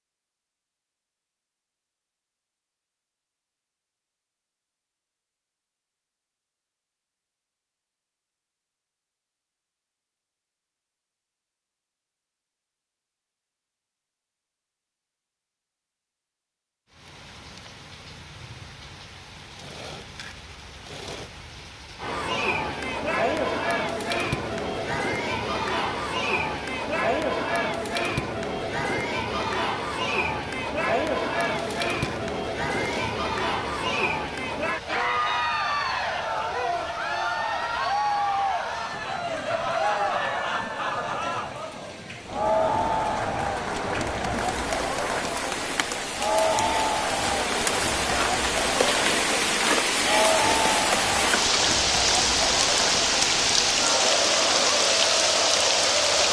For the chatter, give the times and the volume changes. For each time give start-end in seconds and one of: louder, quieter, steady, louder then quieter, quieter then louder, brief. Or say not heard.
22.0-56.2 steady.